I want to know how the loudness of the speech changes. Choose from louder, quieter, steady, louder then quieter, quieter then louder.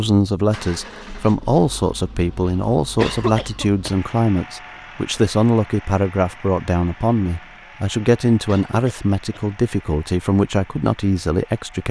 steady.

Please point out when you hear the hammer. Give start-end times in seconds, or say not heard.
not heard.